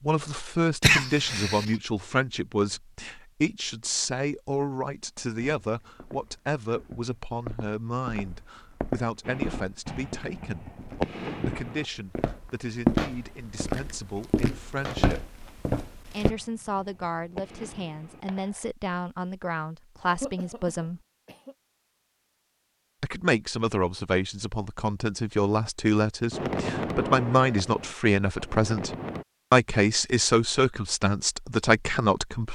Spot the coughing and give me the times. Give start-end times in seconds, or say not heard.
0.8-1.7, 20.1-21.6.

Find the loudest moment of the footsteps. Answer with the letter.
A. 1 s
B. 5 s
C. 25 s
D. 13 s
D.